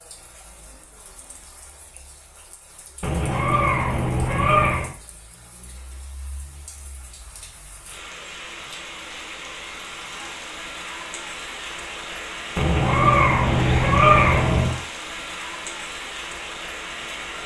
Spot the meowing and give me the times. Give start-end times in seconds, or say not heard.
3.0-4.9, 12.6-14.8.